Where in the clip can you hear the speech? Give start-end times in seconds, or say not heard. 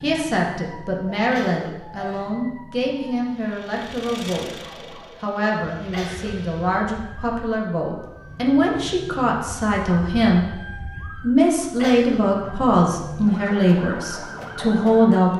0.0-15.3.